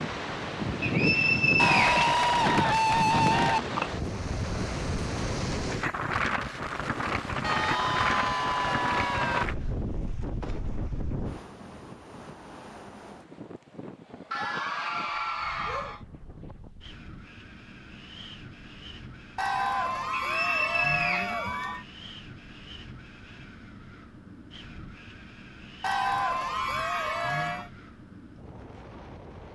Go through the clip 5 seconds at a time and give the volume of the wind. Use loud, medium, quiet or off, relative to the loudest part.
loud, loud, medium, quiet, quiet, quiet.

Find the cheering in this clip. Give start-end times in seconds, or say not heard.
1.6-3.6, 7.4-9.4, 14.3-16.0, 19.4-21.8, 25.8-27.6.